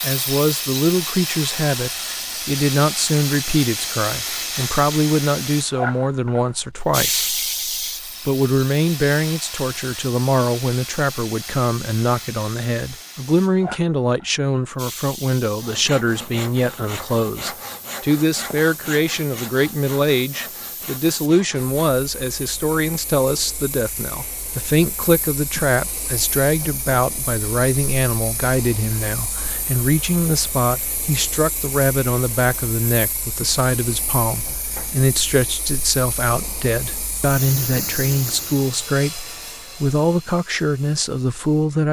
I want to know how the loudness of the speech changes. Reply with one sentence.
The volume of the speech stays about the same.